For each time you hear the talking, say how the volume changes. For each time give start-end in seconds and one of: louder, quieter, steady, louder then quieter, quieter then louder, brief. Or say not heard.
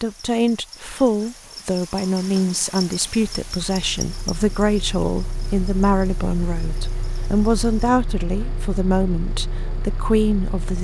0.0-10.8 steady.